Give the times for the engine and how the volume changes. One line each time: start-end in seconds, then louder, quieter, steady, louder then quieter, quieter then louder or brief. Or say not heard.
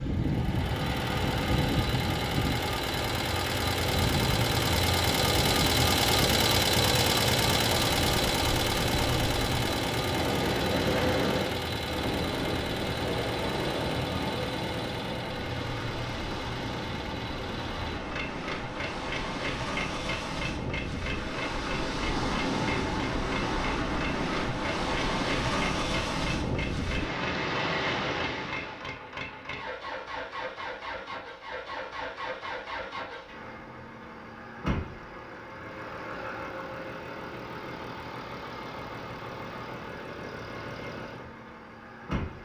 0.0-42.4 quieter.